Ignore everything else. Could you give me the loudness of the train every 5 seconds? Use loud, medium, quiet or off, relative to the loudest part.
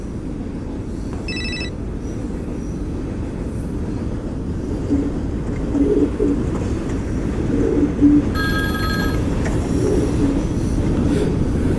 medium, loud, loud.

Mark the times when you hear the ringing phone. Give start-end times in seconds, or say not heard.
1.1-1.7, 8.3-9.2.